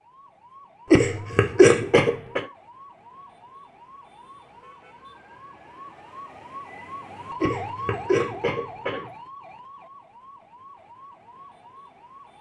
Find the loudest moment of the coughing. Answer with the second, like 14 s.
2 s.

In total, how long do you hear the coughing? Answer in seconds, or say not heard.
3 s.